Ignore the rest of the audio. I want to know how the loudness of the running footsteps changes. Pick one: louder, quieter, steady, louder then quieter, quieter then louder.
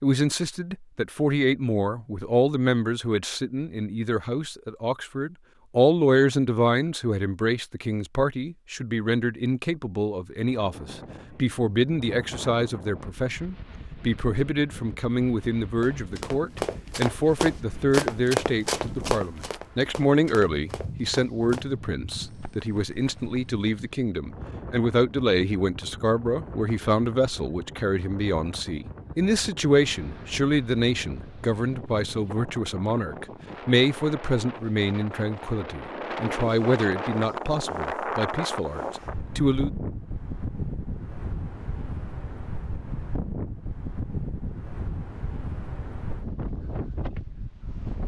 quieter.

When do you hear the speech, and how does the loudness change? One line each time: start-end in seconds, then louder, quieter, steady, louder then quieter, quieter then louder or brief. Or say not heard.
0.0-39.7 steady.